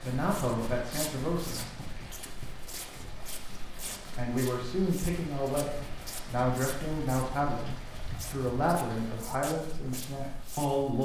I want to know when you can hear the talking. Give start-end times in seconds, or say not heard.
0.0-1.8, 4.2-11.0.